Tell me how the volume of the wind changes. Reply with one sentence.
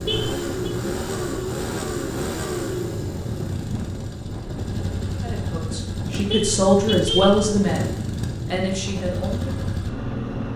The loudness of the wind stays about the same.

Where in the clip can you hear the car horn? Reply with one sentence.
The car horn can be heard from 0.1 to 0.5 s and from 6.3 to 7.5 s.